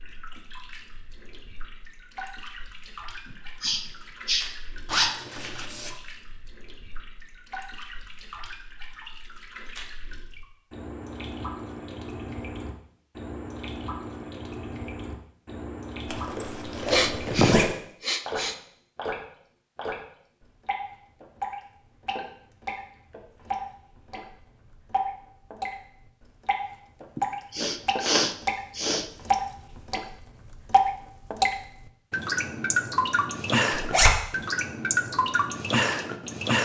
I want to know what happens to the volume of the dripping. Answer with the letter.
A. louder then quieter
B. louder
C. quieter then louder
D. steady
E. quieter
B.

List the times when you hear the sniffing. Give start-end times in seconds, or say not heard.
3.2-5.2, 16.9-18.6, 27.1-29.1.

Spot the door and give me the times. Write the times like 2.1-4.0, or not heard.
not heard.